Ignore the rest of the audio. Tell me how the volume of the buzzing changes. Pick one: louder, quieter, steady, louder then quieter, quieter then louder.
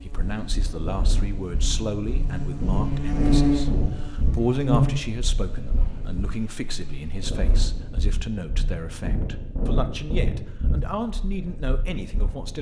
louder then quieter.